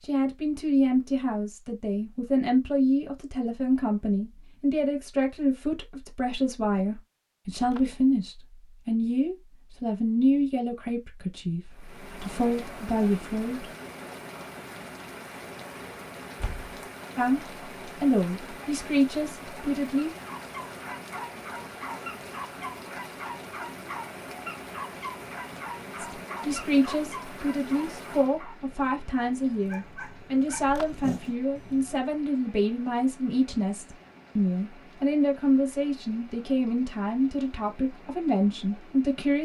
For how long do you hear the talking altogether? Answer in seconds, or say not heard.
30 s.